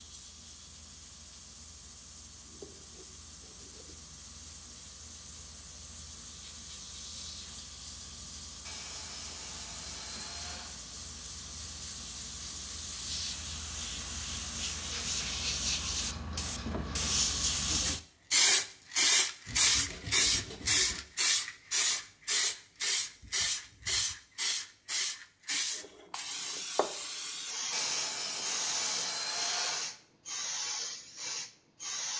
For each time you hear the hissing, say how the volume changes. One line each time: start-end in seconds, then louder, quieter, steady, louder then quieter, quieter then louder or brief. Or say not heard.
0.0-32.1 louder then quieter.